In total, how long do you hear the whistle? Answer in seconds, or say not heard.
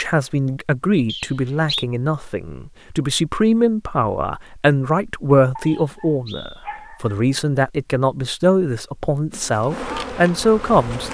2 s.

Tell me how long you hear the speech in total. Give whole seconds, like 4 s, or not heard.
11 s.